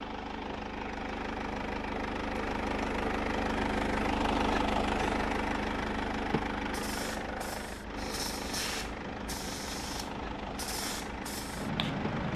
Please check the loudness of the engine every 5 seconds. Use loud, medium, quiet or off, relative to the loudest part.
loud, loud, medium.